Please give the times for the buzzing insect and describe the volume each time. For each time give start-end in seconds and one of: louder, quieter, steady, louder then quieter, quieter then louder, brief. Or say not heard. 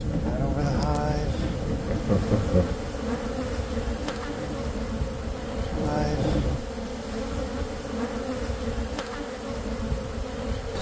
0.0-10.7 steady.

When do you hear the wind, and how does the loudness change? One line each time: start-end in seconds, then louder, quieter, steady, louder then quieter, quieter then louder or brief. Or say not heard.
0.0-6.6 quieter then louder.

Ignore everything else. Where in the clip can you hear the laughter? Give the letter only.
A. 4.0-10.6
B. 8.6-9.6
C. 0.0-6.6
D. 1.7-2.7
D.